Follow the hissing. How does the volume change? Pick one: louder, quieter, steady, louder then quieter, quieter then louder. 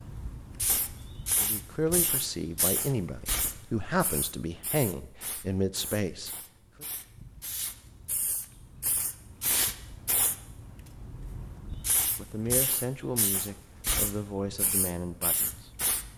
quieter then louder.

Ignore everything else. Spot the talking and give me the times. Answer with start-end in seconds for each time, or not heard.
1.4-6.8, 12.2-15.7.